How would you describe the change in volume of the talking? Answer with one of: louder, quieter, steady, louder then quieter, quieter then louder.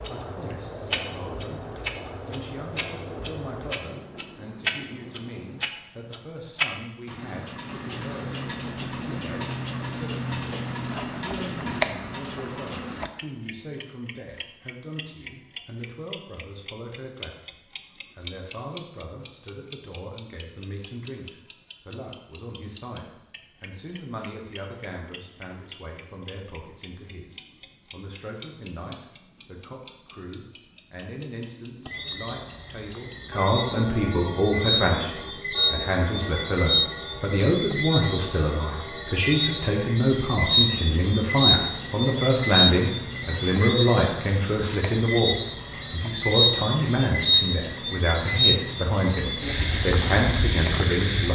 louder.